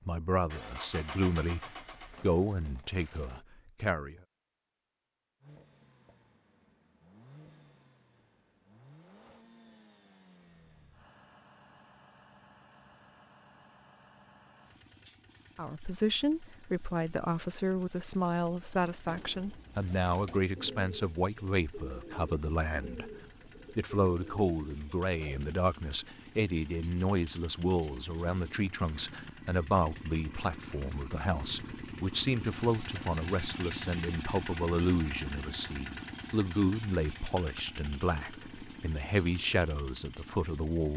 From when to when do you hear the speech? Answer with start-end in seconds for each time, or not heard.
0.1-4.2, 15.6-23.1, 23.8-40.9.